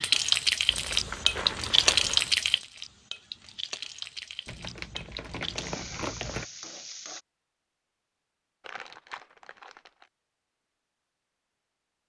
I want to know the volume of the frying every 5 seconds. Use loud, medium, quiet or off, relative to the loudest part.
loud, quiet, off.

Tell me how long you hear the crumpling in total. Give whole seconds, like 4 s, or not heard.
5 s.